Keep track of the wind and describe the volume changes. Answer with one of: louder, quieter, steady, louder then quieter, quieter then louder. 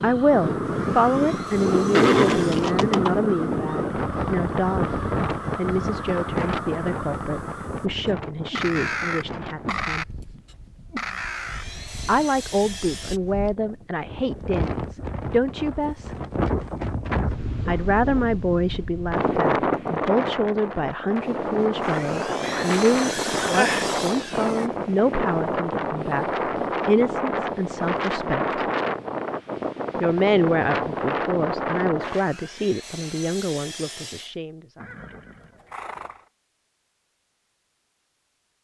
quieter then louder.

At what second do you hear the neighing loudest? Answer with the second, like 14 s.
2 s.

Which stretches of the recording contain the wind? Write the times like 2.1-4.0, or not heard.
0.0-32.3.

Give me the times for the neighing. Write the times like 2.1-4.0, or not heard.
1.9-3.2, 22.4-23.9, 34.8-36.2.